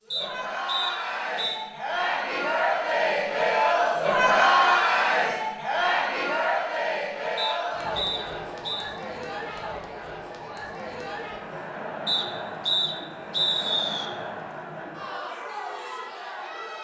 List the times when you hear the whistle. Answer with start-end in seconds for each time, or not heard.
0.1-1.6, 7.3-8.9, 12.1-14.1.